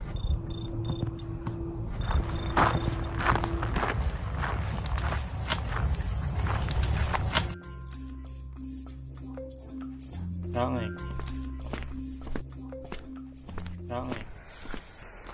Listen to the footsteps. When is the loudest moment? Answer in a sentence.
The loudest moment of the footsteps is at 3 seconds.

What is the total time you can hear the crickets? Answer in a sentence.
The crickets can be heard for 15 seconds in total.